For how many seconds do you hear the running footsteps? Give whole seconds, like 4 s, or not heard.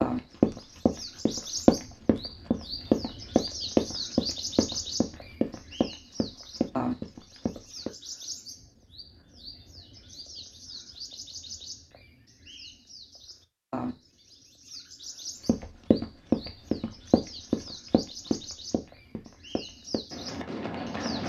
14 s.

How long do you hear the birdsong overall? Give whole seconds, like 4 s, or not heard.
21 s.